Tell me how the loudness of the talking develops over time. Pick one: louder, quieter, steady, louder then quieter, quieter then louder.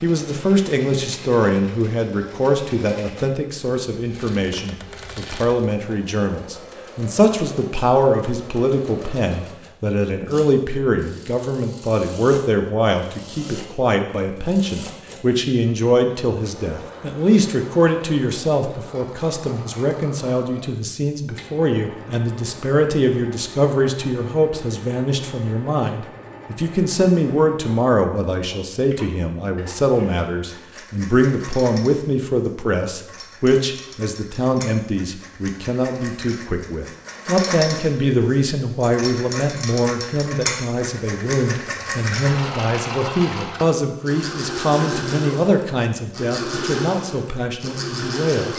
steady.